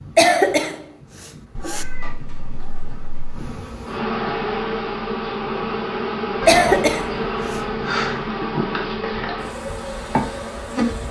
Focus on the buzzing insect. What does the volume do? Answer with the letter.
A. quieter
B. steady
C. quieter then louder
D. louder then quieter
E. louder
E.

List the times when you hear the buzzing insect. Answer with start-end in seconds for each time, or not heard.
0.0-11.0.